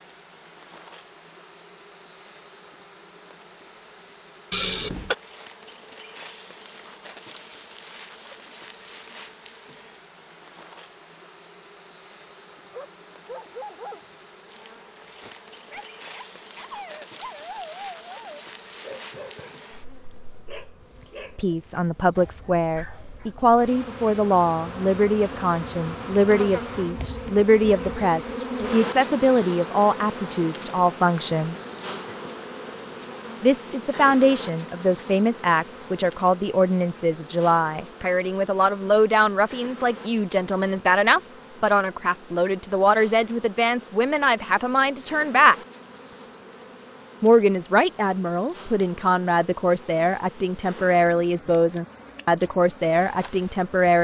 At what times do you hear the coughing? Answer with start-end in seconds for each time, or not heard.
4.5-5.2.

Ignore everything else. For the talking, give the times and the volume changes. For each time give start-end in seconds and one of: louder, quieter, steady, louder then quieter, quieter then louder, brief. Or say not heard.
21.4-31.6 steady
33.4-45.5 steady
47.2-53.9 steady.